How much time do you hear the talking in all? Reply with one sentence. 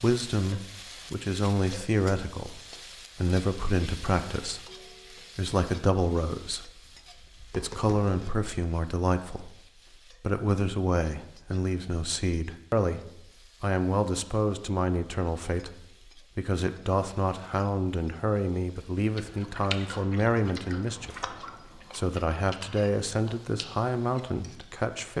You can hear the talking for 23 seconds altogether.